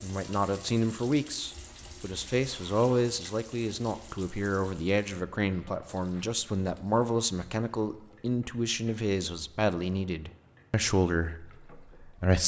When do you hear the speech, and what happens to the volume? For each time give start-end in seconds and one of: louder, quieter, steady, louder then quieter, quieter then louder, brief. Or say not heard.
0.0-12.4 steady.